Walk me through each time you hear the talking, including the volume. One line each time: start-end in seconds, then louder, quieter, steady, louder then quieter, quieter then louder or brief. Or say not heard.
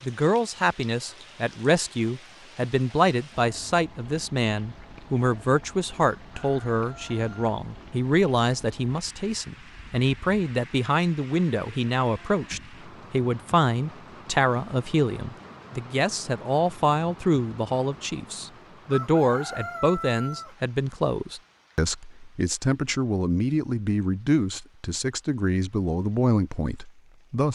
0.0-27.5 steady.